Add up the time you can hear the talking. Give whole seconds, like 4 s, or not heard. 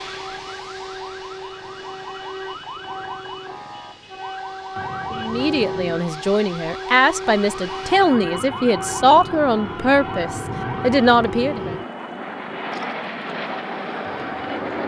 7 s.